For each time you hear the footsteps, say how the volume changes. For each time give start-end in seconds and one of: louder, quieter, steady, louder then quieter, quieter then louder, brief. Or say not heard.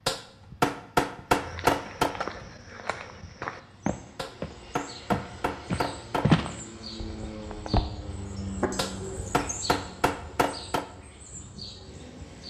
1.3-7.8 louder.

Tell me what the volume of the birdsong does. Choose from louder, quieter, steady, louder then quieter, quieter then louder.
louder then quieter.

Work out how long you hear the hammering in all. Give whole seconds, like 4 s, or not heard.
6 s.